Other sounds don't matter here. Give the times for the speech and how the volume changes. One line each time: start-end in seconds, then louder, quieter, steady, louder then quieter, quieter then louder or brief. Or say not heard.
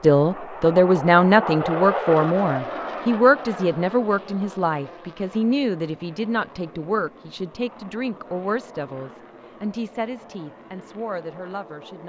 0.0-12.0 quieter.